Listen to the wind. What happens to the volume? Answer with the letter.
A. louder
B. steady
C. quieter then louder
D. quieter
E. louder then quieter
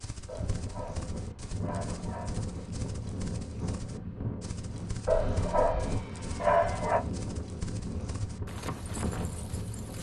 B.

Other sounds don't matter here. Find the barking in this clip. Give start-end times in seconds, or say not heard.
0.2-2.5, 5.0-7.0.